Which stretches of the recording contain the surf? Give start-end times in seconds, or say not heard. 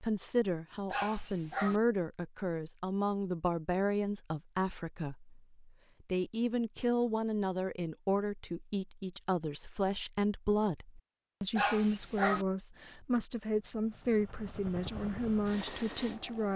not heard.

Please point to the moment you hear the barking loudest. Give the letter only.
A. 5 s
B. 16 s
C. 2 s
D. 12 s
D.